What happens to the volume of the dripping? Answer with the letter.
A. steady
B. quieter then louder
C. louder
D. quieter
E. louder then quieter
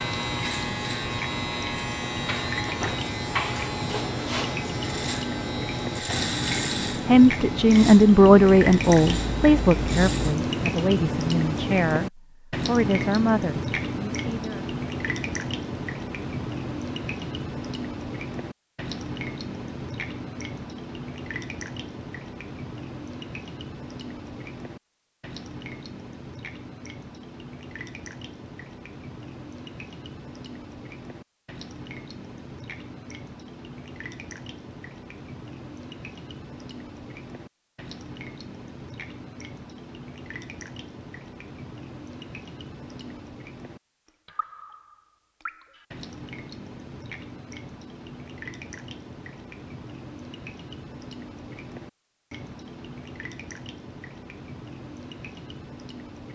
D.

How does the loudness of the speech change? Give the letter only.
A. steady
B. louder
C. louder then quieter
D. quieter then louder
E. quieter
E.